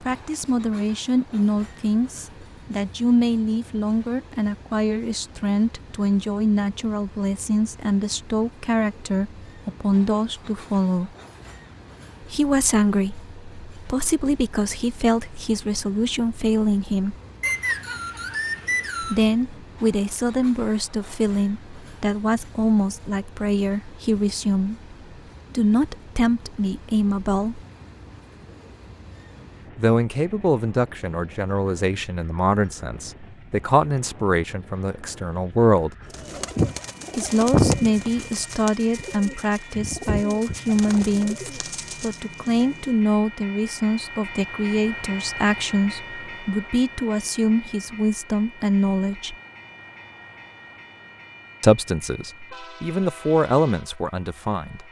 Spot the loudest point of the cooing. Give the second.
38 s.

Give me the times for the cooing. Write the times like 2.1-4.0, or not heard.
36.1-42.9.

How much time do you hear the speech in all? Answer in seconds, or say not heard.
46 s.